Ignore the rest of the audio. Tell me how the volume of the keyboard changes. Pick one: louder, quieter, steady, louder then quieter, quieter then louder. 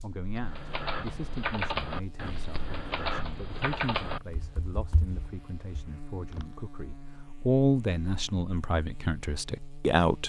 quieter.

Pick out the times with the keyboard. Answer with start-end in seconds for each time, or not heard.
0.2-6.5.